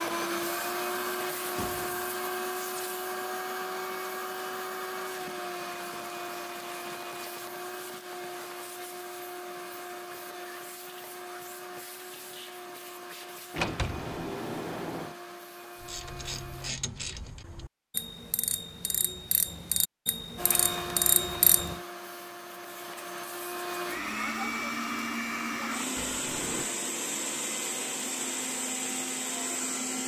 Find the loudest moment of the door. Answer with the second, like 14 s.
14 s.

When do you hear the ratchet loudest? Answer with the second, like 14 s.
21 s.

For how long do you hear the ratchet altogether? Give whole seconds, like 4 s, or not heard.
6 s.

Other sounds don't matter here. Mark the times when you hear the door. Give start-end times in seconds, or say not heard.
1.6-2.1, 13.5-15.2, 25.9-26.7.